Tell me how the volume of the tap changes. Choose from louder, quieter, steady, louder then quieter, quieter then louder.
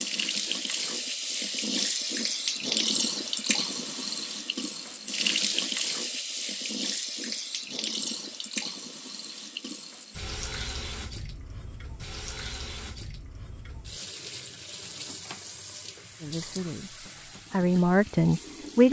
quieter.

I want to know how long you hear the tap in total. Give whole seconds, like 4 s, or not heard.
19 s.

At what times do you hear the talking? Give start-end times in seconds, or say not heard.
16.2-18.8.